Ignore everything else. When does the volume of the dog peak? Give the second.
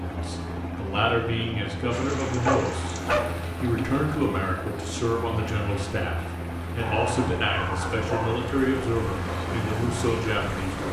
3 s.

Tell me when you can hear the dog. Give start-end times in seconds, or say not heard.
2.5-3.4, 6.8-8.5.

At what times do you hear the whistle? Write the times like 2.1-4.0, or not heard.
not heard.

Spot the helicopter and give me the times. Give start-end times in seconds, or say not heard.
0.0-10.8.